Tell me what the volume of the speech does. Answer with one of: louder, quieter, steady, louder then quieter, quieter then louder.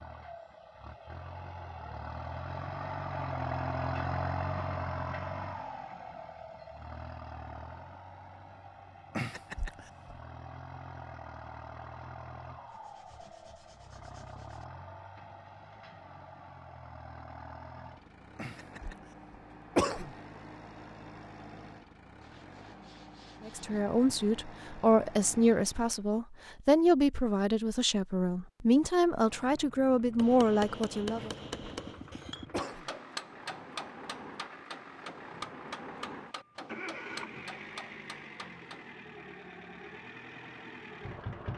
steady.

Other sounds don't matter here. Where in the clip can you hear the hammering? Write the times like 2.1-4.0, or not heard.
30.1-38.9.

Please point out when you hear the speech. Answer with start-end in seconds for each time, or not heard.
23.4-31.3.